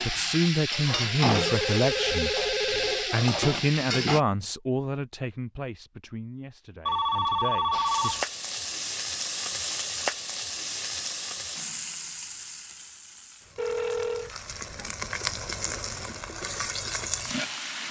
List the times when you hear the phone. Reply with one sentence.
You can hear the phone from 1.3 to 3.1 s, from 6.8 to 8.2 s and from 13.6 to 14.3 s.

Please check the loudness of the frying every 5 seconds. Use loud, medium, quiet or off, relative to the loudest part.
loud, loud, medium, loud.